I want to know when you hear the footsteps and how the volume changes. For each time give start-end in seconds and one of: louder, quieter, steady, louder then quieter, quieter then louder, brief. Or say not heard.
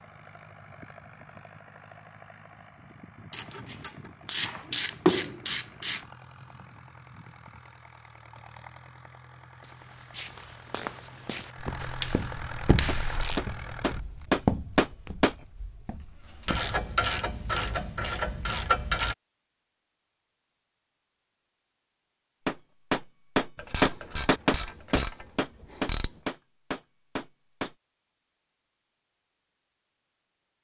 9.6-16.8 louder then quieter.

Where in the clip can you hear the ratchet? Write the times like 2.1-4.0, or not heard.
3.3-6.0, 11.8-13.4, 16.4-19.1, 23.6-26.1.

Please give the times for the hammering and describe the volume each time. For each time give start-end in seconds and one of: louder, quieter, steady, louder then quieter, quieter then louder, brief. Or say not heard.
12.8-15.3 brief
22.4-27.8 quieter.